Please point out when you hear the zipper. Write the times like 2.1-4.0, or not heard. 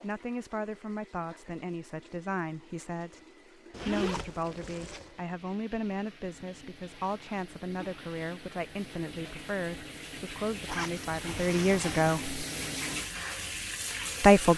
3.7-5.1, 10.7-12.2.